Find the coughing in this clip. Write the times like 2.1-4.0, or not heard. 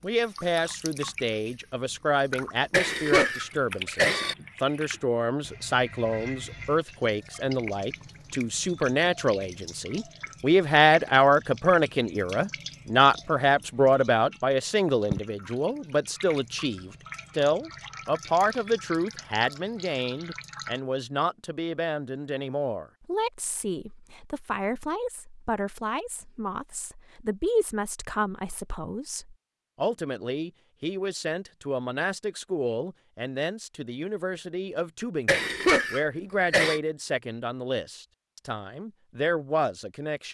2.7-4.3, 35.2-36.8.